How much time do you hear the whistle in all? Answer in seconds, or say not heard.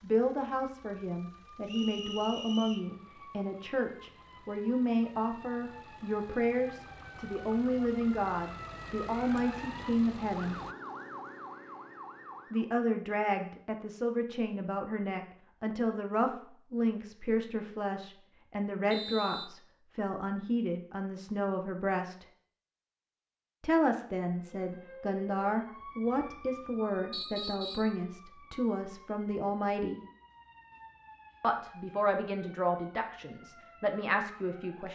3 s.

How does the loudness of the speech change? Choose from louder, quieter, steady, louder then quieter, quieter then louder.
steady.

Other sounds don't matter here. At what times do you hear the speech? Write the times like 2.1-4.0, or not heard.
0.0-10.6, 12.5-22.2, 23.6-30.0, 31.4-34.8.